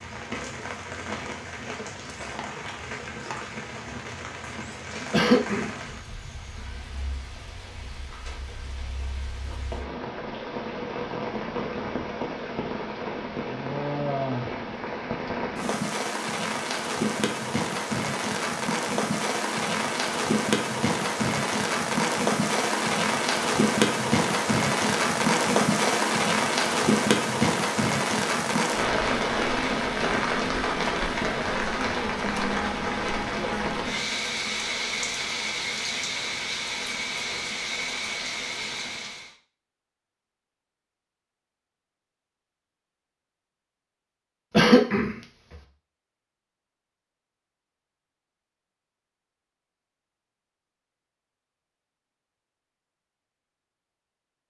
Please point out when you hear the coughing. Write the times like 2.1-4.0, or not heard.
5.1-6.2, 44.5-45.1.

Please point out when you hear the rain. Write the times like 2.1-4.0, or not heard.
0.0-39.4.